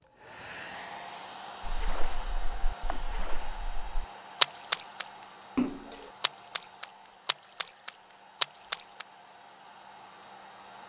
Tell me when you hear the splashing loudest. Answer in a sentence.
The volume of the splashing peaks at 5 seconds.